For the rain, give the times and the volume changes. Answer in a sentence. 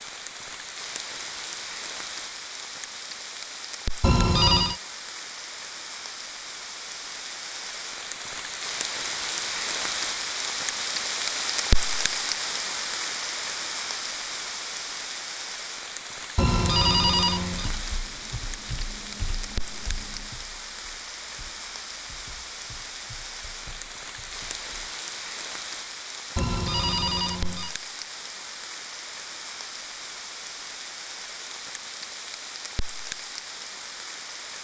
You can hear the rain from 0.0 to 34.5 s, getting louder then quieter.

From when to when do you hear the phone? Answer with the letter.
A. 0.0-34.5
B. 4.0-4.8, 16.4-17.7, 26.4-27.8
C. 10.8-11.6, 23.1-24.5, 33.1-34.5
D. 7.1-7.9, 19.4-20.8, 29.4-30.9
B.